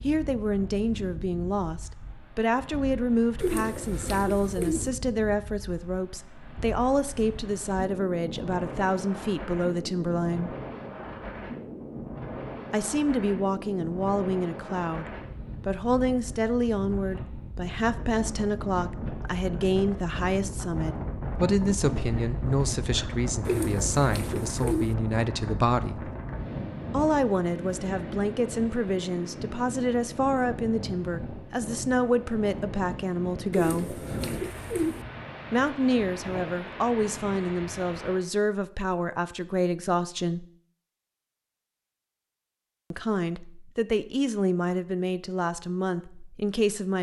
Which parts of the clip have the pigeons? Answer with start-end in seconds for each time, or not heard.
3.4-4.9, 23.4-24.9, 33.5-35.0.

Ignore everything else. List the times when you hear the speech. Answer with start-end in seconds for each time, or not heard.
0.0-10.6, 12.7-26.1, 26.9-34.0, 35.5-40.5, 42.9-46.9.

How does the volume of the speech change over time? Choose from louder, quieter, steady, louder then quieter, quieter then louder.
steady.